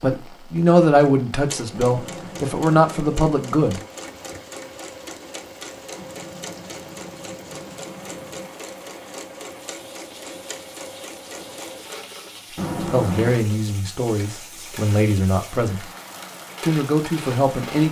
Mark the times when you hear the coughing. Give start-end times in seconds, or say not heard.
not heard.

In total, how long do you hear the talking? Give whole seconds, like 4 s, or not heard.
8 s.